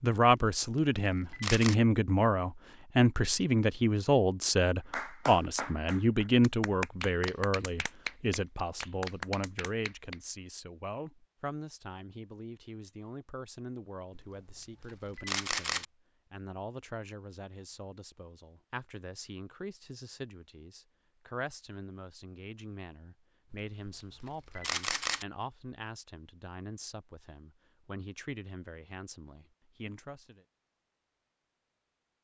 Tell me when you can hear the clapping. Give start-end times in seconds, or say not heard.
4.9-10.2.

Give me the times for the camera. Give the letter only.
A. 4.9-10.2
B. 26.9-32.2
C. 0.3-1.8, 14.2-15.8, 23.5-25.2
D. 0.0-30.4
C.